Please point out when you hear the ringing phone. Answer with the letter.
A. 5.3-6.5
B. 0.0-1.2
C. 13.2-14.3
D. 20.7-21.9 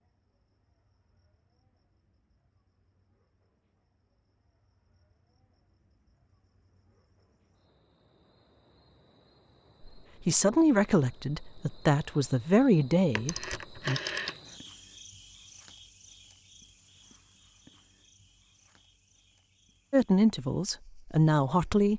C.